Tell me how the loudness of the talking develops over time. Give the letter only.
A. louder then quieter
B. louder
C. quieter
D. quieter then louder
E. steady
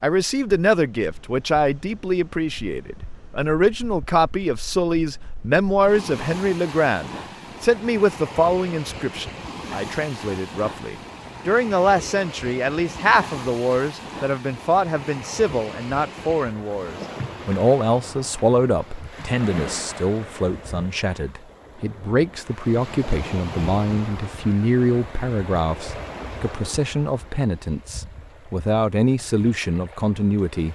E.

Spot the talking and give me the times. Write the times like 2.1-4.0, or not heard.
0.0-30.7.